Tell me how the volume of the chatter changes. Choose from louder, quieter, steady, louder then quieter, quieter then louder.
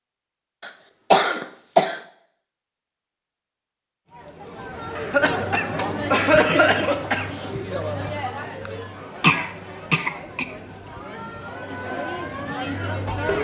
quieter then louder.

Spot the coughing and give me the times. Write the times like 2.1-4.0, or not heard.
0.6-2.0, 5.0-7.2, 9.2-10.4.